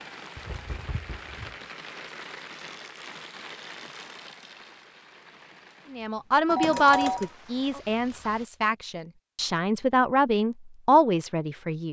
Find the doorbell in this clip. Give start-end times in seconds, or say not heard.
0.3-1.6, 6.5-7.3.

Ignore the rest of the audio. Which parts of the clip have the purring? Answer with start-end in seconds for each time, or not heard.
not heard.